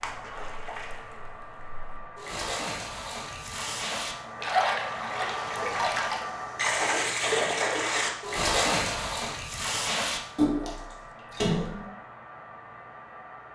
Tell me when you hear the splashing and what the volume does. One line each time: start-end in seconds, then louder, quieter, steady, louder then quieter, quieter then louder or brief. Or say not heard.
0.0-11.9 louder.